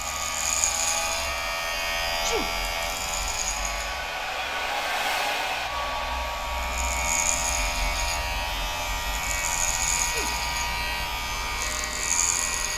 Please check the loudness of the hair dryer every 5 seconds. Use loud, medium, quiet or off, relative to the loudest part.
loud, loud, medium.